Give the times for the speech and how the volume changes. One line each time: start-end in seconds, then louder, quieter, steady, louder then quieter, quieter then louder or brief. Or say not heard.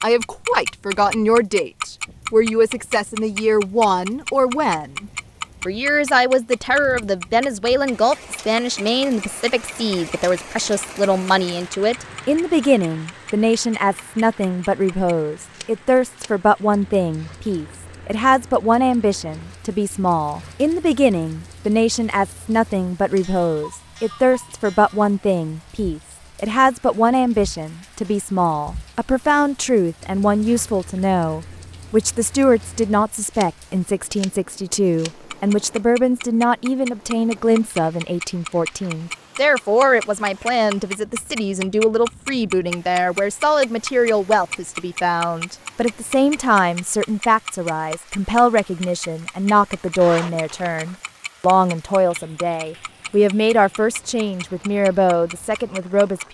0.0-56.2 steady.